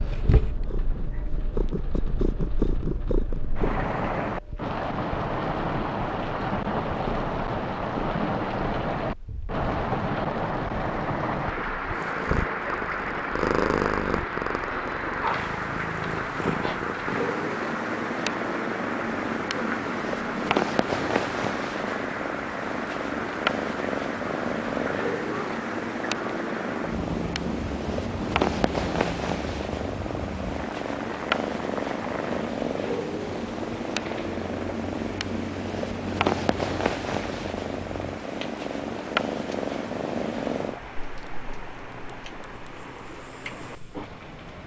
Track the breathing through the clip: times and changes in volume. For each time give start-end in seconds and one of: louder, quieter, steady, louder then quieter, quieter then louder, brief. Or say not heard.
not heard.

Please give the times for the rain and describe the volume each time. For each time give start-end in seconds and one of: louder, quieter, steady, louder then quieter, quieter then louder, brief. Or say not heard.
0.0-44.6 quieter.